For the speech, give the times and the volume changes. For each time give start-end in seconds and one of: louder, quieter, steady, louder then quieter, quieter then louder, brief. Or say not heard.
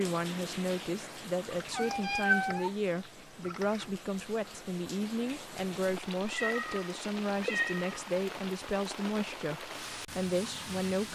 0.0-11.1 steady.